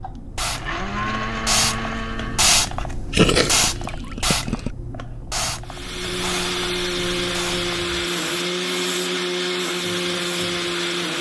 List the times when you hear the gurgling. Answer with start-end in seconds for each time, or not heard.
3.1-4.7.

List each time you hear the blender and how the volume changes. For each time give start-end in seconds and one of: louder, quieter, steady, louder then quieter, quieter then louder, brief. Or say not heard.
0.0-2.5 brief
5.7-11.1 steady.